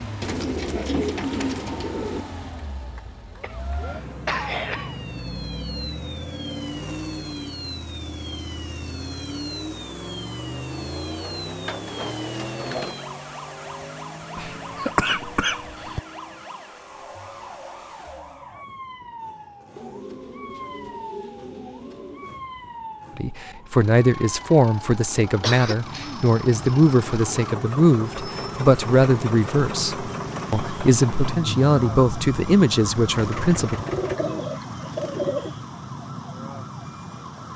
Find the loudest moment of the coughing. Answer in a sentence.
The loudest moment of the coughing is at 15 seconds.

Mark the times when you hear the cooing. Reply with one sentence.
You can hear the cooing from 0.2 to 2.2 s, from 11.2 to 13.0 s, from 19.8 to 22.4 s and from 33.9 to 35.5 s.